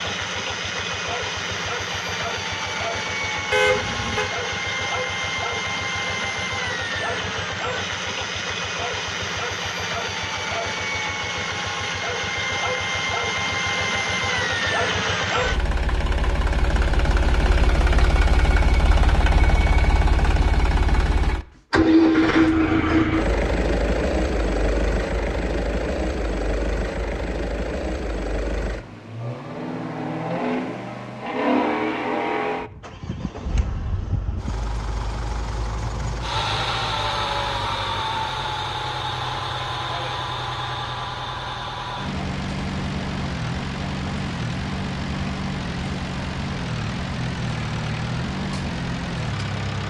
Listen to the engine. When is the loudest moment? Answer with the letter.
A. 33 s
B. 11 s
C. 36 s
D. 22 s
D.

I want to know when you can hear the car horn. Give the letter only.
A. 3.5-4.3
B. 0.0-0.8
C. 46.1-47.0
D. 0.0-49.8
A.